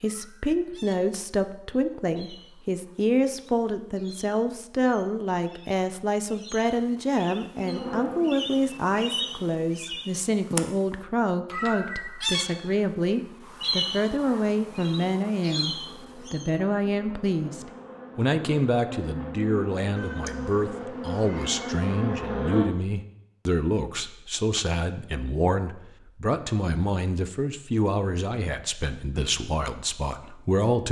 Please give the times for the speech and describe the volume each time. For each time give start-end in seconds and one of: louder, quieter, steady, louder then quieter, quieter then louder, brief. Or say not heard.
0.0-30.8 steady.